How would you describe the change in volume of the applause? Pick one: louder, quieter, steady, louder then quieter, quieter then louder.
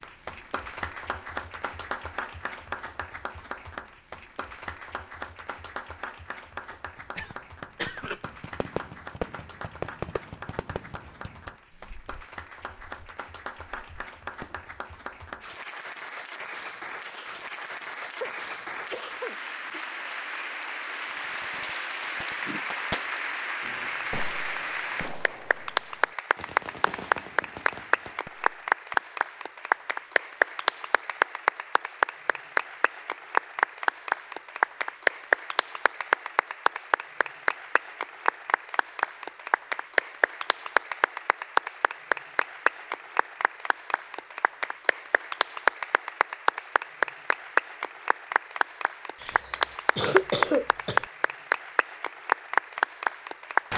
louder.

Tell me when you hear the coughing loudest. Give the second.
50 s.